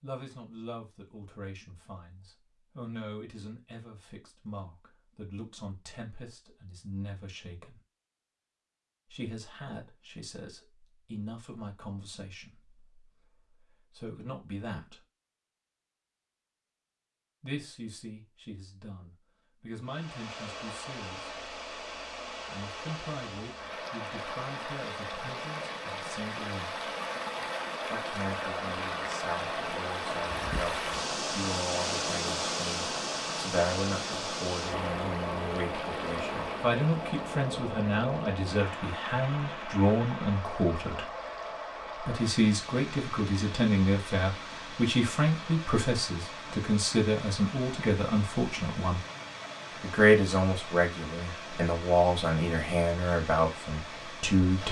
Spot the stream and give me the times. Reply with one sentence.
You can hear the stream from 19.8 to 54.6 s.